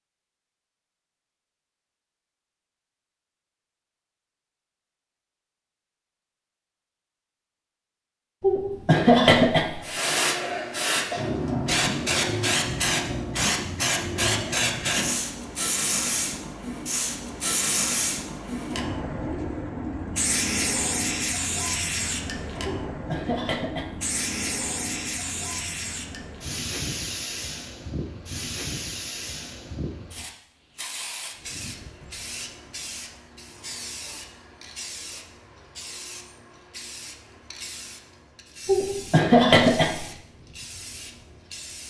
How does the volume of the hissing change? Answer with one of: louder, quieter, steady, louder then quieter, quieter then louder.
quieter.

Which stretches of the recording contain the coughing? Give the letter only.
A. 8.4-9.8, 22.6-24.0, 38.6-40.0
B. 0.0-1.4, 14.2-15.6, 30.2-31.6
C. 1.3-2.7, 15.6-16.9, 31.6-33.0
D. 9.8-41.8
A.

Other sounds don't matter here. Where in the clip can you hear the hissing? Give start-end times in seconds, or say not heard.
9.8-41.8.